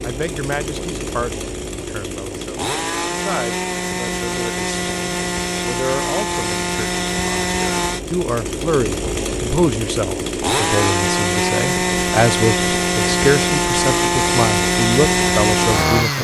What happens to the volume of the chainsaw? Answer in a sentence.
The volume of the chainsaw goes up.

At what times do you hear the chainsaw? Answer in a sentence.
You can hear the chainsaw from 0.0 to 16.2 s.